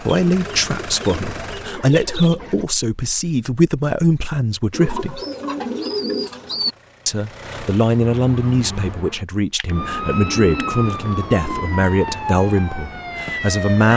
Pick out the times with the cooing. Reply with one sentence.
The cooing can be heard from 0.2 to 2.6 s, from 4.7 to 6.8 s and from 9.8 to 11.8 s.